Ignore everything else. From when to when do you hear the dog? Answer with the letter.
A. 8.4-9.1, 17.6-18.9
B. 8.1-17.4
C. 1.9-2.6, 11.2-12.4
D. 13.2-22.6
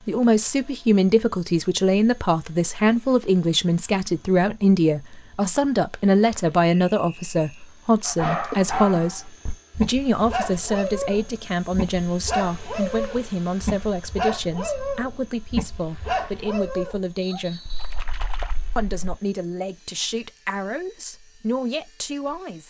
B.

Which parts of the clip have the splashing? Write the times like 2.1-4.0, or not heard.
8.4-9.1, 17.6-18.9.